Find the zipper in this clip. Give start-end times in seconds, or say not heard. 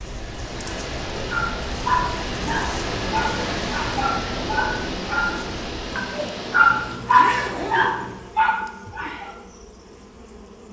6.7-8.2.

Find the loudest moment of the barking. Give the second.
7 s.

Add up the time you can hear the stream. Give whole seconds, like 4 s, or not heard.
7 s.